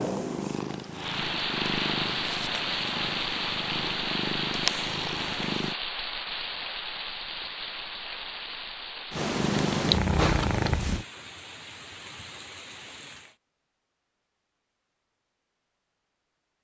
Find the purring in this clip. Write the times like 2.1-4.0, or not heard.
0.0-5.8, 9.1-11.1.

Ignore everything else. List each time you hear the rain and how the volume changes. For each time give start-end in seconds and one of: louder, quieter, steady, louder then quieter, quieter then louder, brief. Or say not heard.
0.0-13.3 quieter.